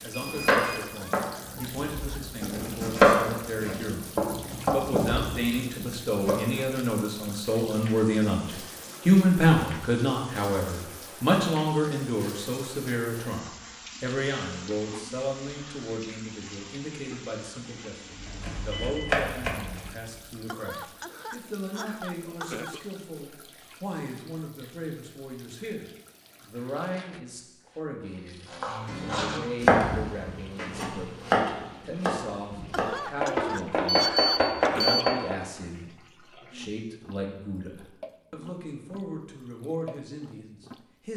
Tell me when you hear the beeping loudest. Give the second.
34 s.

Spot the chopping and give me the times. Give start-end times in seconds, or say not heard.
0.2-6.7, 18.1-20.4, 28.5-35.4.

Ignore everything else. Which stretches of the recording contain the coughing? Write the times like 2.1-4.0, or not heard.
0.8-2.3, 20.4-22.9, 32.7-35.1.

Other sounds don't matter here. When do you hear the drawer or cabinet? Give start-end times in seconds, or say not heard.
not heard.